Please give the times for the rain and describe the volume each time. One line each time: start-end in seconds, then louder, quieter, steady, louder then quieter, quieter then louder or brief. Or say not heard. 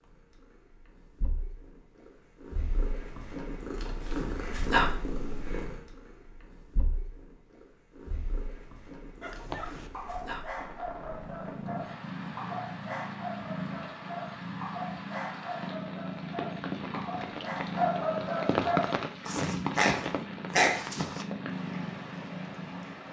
10.5-23.0 louder then quieter.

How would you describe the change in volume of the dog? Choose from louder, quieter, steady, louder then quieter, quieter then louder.
louder.